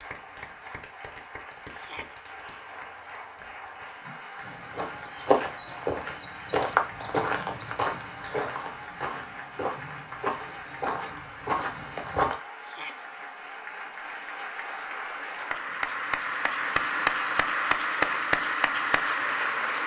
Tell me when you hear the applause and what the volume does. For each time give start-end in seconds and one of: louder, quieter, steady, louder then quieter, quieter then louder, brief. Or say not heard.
0.0-19.8 louder.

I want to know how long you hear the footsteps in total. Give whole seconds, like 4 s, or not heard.
8 s.